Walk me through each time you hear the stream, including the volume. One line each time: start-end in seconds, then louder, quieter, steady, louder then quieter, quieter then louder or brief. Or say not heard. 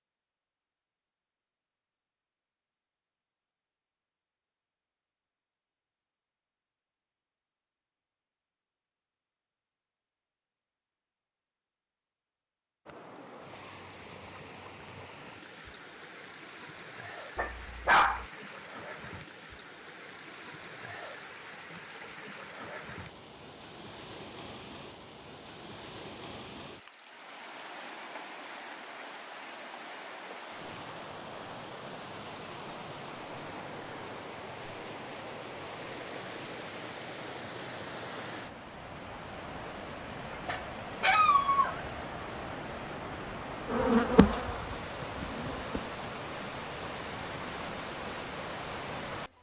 12.8-49.3 louder.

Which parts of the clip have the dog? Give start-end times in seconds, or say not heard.
17.4-18.2, 40.5-41.8.